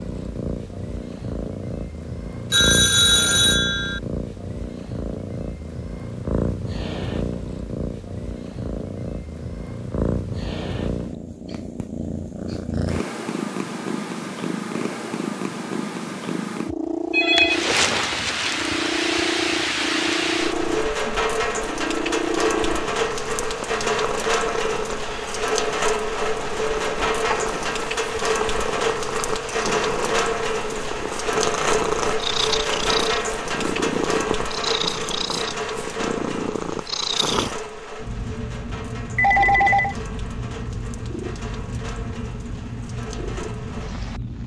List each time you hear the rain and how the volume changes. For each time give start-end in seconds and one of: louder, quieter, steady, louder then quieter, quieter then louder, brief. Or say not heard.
17.4-44.4 quieter.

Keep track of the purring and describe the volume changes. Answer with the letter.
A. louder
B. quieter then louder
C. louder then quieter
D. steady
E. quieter
D.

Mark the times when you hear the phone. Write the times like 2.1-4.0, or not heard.
2.5-4.0, 17.1-17.6, 39.1-40.0.